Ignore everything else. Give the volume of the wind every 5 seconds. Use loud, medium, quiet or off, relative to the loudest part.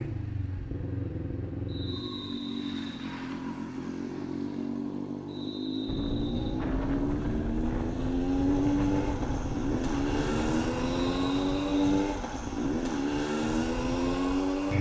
off, loud, loud.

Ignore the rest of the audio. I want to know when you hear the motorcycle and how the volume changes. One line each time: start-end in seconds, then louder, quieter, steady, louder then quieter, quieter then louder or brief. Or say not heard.
0.0-14.7 louder.